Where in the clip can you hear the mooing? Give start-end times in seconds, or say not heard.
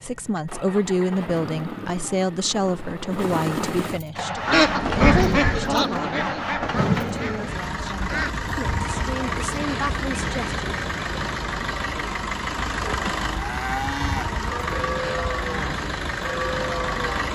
13.2-17.3.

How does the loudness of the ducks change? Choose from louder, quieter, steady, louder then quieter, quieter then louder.
quieter.